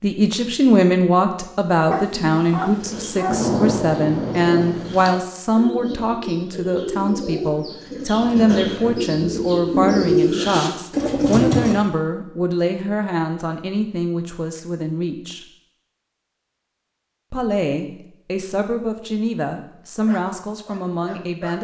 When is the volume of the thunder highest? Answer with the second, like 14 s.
4 s.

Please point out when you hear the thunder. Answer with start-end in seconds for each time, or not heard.
3.2-5.2.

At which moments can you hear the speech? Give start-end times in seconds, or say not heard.
0.0-15.4, 17.3-21.5.